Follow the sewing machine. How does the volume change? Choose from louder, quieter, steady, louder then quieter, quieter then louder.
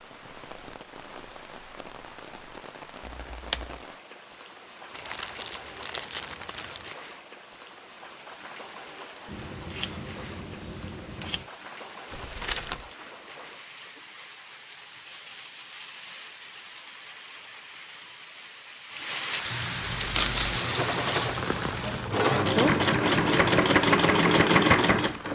louder.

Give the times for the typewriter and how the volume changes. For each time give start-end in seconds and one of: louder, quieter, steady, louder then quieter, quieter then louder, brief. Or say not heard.
not heard.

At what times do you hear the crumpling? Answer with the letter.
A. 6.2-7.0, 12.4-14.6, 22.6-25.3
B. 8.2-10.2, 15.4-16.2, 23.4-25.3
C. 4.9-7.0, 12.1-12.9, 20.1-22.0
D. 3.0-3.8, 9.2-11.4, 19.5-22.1
C.